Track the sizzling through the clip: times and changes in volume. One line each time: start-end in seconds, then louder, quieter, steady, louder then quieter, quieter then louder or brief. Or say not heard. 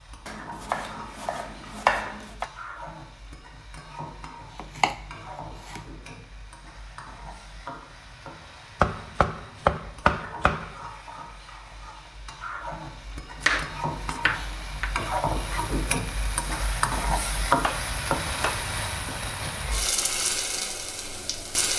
0.0-21.7 louder.